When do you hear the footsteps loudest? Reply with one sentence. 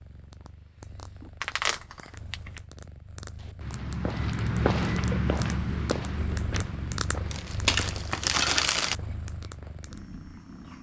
The loudest moment of the footsteps is at 5 seconds.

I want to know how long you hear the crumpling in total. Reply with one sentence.
You can hear the crumpling for 3 seconds altogether.